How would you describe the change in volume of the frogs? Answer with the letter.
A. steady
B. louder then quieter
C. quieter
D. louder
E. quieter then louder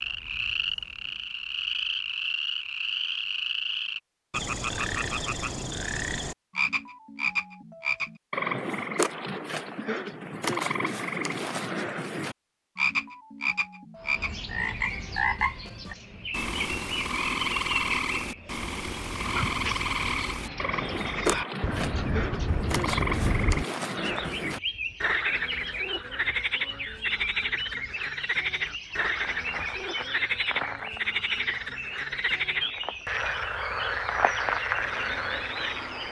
A.